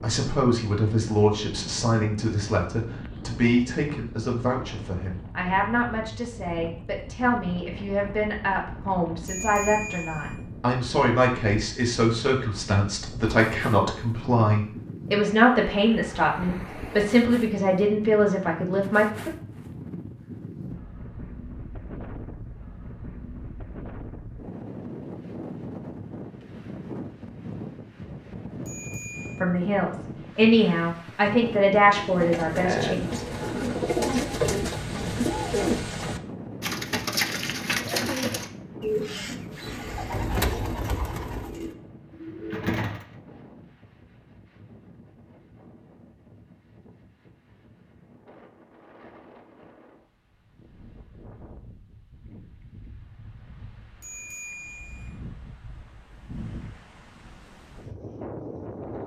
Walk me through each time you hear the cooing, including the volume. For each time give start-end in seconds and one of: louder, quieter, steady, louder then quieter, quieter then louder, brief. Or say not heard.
31.8-43.0 quieter.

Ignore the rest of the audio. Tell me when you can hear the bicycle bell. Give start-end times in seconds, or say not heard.
9.2-10.3, 28.6-29.4, 54.0-55.1.